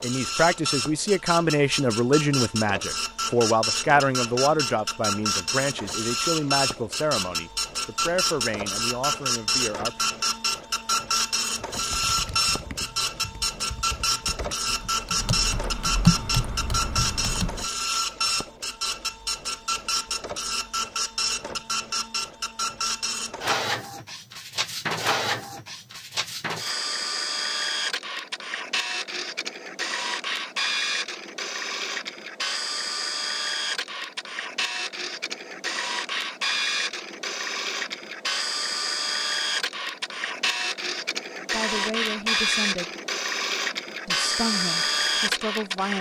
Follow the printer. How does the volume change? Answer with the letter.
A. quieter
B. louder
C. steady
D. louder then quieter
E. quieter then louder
C.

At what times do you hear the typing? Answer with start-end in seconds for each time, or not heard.
11.6-17.6.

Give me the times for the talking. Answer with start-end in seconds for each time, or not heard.
0.0-10.1, 41.5-42.9, 44.0-45.9.